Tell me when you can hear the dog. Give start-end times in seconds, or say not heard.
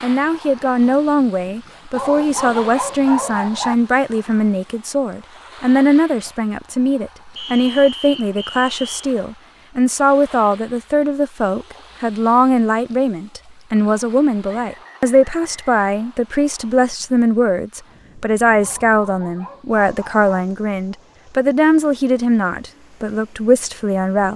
1.9-3.8, 18.6-20.2.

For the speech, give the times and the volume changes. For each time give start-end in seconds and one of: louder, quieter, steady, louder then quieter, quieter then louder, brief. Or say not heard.
0.0-24.3 steady.